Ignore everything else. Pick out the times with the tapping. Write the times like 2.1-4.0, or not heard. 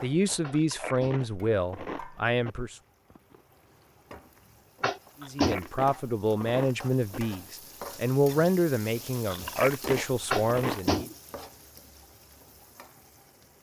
0.4-1.3, 4.8-5.7, 10.3-11.2.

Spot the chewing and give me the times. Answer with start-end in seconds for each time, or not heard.
0.5-2.5, 5.2-7.2, 9.3-10.8.